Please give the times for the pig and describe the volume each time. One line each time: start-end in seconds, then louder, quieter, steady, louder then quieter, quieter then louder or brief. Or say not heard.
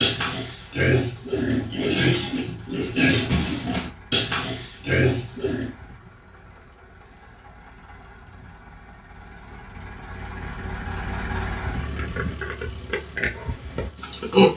0.0-5.7 steady
11.8-14.5 brief.